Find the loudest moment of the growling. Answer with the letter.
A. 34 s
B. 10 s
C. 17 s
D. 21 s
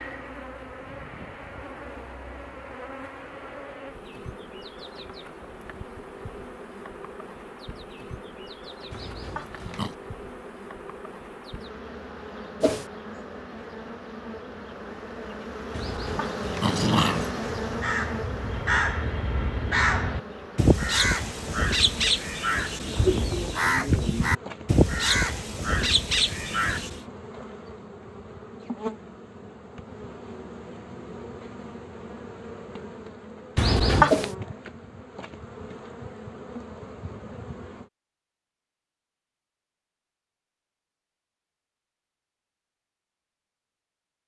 A.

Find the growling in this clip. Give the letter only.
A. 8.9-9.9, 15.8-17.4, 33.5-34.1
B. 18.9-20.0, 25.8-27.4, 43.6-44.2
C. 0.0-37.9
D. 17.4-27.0
A.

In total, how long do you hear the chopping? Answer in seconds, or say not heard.
not heard.